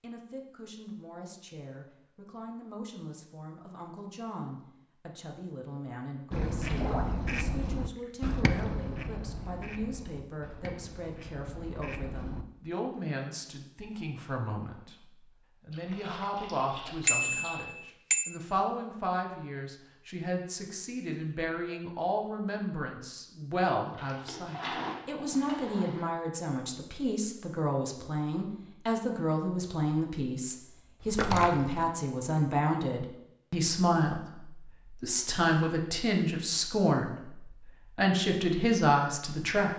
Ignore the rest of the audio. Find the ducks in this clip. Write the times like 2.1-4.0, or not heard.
6.3-12.4.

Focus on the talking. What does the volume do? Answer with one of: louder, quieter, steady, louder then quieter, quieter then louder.
louder.